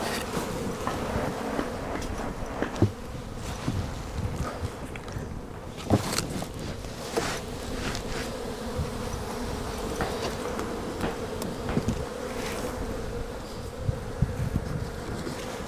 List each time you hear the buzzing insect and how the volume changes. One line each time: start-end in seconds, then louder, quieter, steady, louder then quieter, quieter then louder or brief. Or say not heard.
0.0-15.6 steady.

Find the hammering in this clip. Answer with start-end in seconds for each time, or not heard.
0.8-2.9, 9.8-11.9.